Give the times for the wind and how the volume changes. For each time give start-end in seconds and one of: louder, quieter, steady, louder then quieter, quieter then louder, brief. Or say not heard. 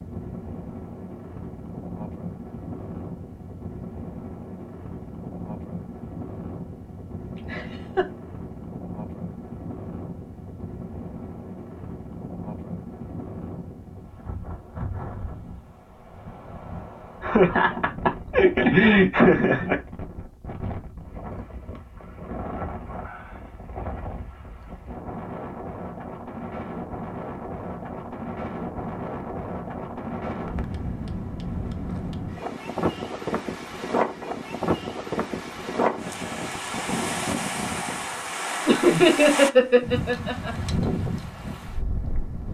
0.0-42.4 louder.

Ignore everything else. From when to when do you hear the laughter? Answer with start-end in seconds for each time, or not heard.
7.3-8.1, 17.2-19.8, 38.6-40.5.